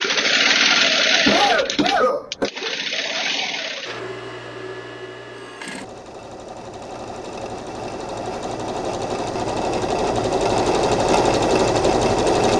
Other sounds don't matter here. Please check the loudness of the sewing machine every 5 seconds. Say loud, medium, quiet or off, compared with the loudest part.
loud, medium, loud.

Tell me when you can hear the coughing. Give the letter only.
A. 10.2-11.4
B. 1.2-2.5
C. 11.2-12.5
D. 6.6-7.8
B.